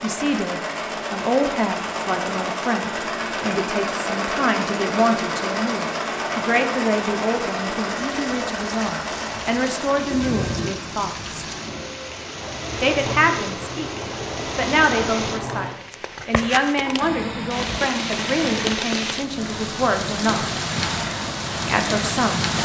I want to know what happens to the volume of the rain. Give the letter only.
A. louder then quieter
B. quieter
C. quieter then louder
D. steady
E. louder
E.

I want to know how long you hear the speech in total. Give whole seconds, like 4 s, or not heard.
20 s.